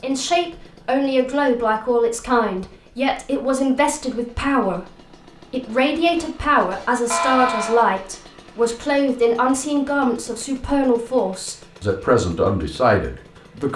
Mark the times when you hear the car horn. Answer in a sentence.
The car horn can be heard from 7.1 to 7.9 s.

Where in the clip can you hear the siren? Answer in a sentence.
You can't hear the siren here.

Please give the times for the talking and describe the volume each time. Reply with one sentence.
You can hear the talking from 0.0 to 13.7 s, at a steady volume.